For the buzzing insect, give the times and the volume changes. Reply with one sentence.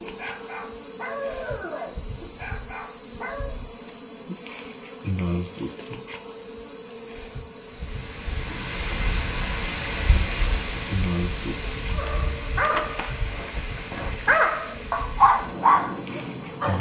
You can hear the buzzing insect from 0.0 to 16.7 s, at a steady volume.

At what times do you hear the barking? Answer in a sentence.
The barking can be heard from 0.0 to 3.5 s and from 11.9 to 16.7 s.